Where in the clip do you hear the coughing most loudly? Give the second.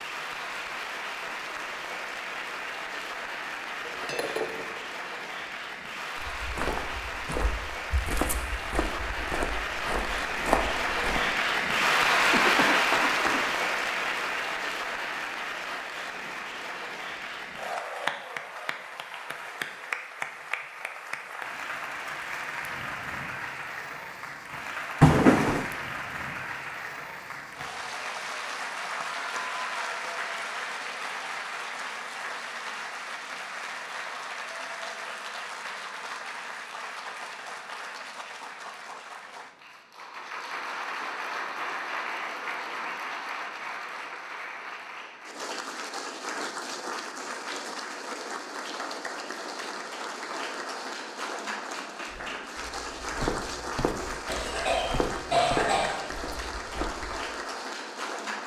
25 s.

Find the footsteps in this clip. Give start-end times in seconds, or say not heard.
6.2-11.2, 52.1-57.1.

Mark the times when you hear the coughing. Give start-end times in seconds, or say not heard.
12.3-13.4, 25.0-25.6, 54.2-56.1.